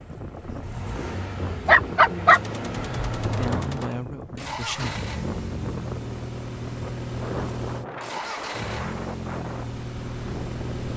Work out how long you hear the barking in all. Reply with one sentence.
You can hear the barking for 2 seconds altogether.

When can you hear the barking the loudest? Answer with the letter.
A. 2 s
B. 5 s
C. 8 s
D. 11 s
A.